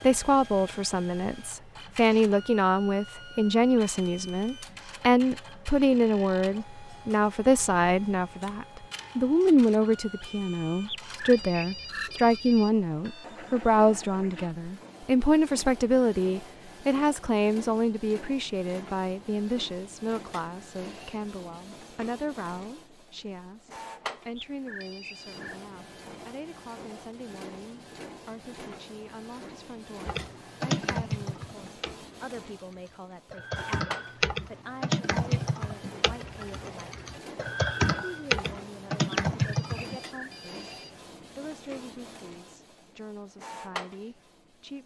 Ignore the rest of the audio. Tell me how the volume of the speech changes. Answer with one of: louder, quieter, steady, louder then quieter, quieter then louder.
quieter.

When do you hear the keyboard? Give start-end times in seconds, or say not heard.
30.1-40.0.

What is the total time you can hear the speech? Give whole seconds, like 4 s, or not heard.
44 s.